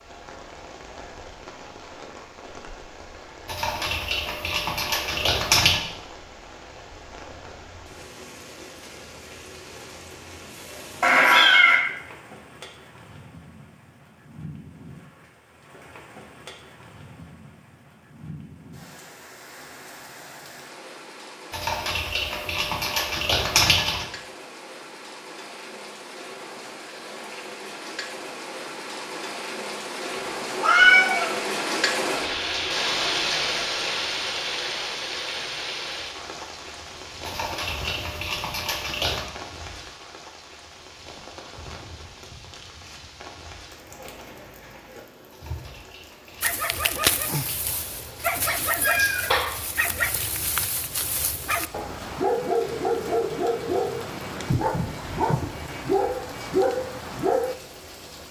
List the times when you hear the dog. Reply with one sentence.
You can hear the dog from 46.4 to 57.5 s.